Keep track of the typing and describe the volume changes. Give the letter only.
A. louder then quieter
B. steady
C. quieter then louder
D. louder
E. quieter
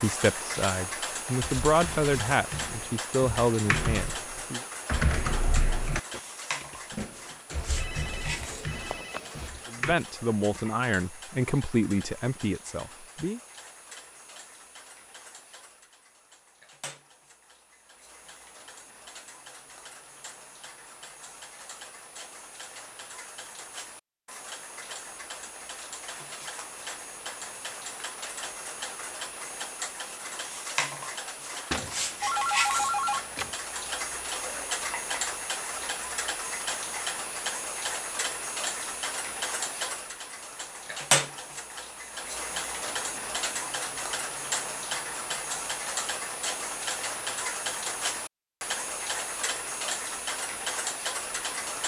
A.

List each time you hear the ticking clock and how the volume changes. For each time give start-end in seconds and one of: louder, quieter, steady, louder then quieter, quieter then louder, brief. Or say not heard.
0.0-51.8 quieter then louder.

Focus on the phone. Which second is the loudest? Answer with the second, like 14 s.
33 s.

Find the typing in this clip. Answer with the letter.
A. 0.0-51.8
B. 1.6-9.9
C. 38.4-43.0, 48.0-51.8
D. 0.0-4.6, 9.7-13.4
B.